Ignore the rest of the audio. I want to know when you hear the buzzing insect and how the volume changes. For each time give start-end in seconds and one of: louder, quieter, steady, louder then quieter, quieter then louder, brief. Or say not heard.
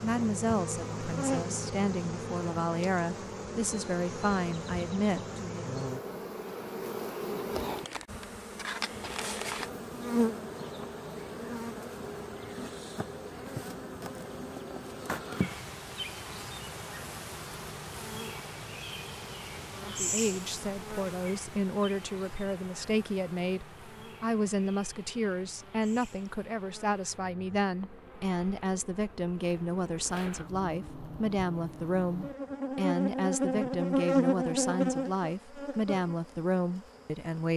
0.0-37.5 quieter then louder.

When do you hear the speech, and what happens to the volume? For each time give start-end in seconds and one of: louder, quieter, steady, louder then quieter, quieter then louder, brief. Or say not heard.
0.0-5.7 steady
19.8-37.5 steady.